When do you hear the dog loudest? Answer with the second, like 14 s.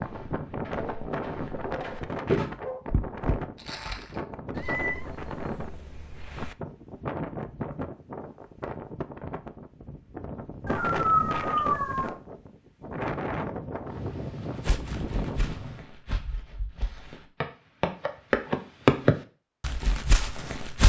11 s.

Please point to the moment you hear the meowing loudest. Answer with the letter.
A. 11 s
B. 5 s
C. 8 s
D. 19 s
B.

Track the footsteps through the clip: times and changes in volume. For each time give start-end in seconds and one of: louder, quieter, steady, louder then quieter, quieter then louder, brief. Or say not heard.
0.0-4.8 louder then quieter
14.7-20.8 louder then quieter.